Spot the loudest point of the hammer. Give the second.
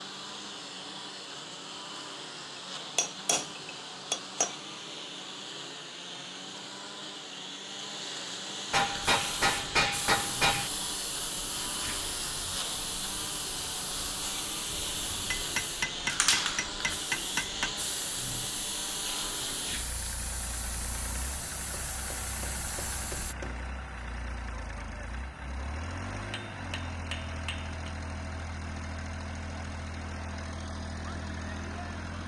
10 s.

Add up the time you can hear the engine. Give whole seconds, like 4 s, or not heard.
32 s.